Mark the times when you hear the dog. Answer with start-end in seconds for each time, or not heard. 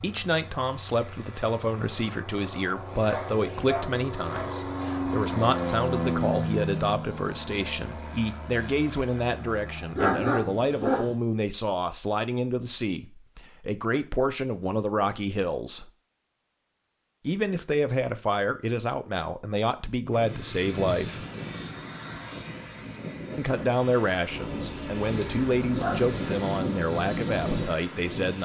3.0-4.6, 9.9-11.2, 24.3-26.2.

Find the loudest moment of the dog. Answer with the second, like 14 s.
10 s.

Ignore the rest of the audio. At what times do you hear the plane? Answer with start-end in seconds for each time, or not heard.
0.0-10.1, 20.1-28.4.